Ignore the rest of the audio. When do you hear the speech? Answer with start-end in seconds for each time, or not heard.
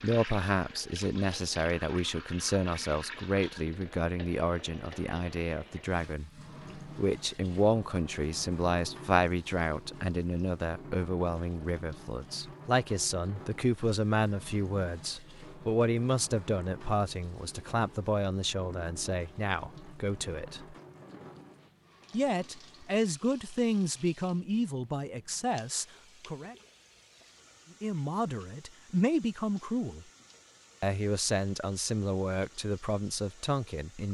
0.0-20.8, 22.1-26.6, 27.8-30.1, 30.8-34.0.